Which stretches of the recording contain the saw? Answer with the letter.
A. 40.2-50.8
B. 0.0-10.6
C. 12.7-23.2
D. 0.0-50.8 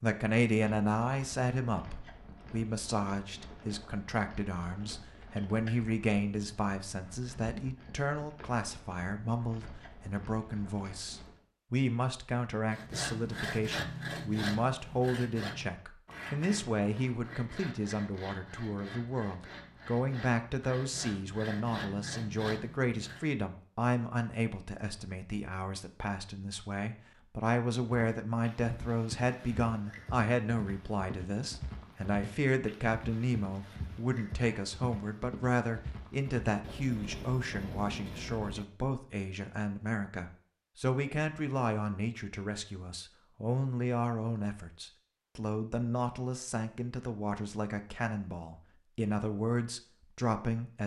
C.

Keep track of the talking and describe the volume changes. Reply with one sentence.
The loudness of the talking stays about the same.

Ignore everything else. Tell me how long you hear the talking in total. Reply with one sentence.
You can hear the talking for 51 seconds altogether.